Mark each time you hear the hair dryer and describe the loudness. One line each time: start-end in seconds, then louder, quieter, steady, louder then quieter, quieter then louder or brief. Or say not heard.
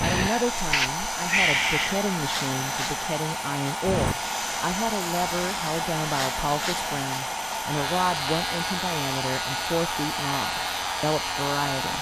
0.0-11.9 steady.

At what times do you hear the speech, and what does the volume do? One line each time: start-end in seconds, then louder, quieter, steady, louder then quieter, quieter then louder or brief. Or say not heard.
0.0-11.9 steady.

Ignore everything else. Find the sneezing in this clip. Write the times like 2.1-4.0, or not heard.
0.0-2.0.